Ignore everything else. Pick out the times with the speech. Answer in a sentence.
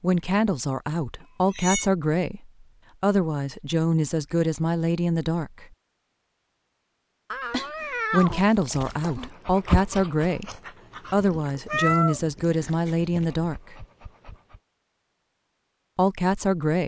You can hear the speech from 0.0 to 5.7 s, from 8.1 to 13.8 s and from 15.9 to 16.8 s.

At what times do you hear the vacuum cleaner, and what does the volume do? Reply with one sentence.
You can't hear the vacuum cleaner here.